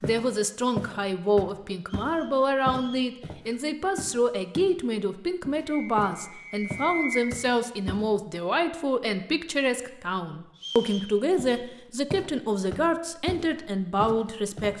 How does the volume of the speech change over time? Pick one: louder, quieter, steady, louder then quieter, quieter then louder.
steady.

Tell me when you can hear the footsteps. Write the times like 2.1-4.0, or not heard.
0.0-4.8, 5.4-8.1, 11.3-14.7.